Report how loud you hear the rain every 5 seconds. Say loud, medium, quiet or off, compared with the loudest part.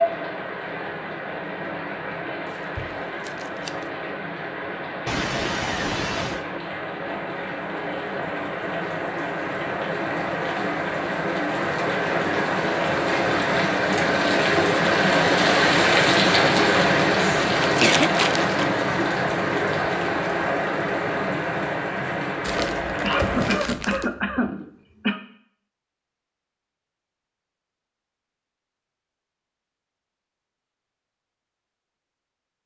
medium, medium, loud, loud, medium, off, off.